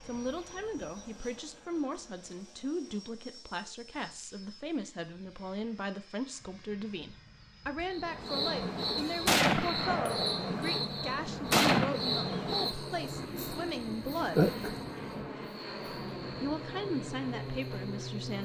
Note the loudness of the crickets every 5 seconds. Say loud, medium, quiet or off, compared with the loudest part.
off, loud, loud, quiet.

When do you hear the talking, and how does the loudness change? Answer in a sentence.
You can hear the talking from 0.0 to 14.5 s, at a steady volume; and briefly from 16.4 to 18.4 s.